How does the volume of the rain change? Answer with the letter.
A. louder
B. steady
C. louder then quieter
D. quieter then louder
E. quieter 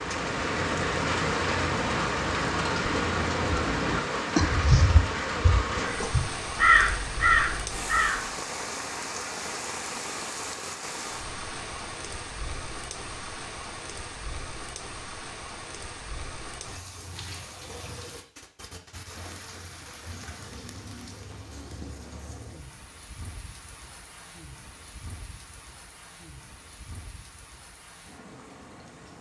E.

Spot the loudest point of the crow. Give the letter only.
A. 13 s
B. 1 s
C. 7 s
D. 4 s
C.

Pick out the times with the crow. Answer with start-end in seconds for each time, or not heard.
0.0-8.3.